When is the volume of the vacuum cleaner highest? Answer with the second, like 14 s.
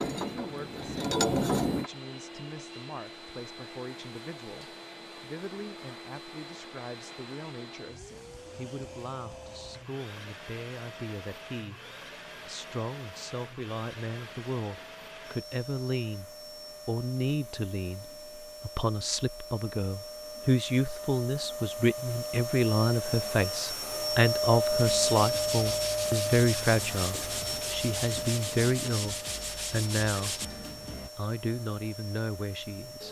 25 s.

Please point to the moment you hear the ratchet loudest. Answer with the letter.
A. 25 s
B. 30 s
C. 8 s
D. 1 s
D.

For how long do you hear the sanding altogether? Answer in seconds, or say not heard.
6 s.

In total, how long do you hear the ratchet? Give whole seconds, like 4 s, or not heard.
2 s.